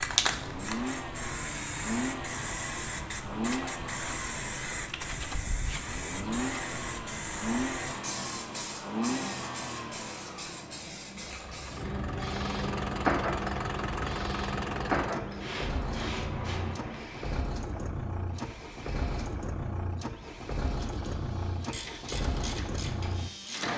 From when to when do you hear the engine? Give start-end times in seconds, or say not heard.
0.2-23.7.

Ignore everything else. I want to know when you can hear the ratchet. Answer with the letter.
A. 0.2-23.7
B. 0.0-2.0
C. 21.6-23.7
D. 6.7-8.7
C.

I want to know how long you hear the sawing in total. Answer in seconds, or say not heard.
not heard.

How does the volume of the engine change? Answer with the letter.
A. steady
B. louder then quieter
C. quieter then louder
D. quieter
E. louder
A.